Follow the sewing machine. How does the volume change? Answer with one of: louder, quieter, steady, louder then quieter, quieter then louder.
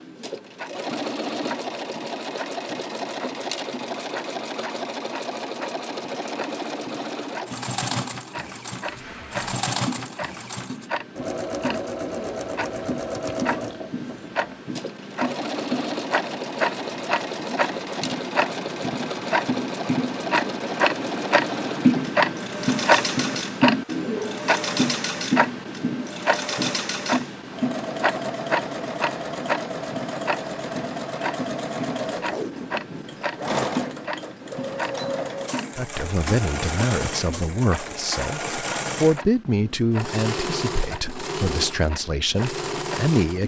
steady.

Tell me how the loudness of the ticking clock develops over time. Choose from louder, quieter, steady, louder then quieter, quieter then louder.
louder then quieter.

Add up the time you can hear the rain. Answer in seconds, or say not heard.
not heard.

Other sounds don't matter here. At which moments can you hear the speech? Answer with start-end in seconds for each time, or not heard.
35.8-43.4.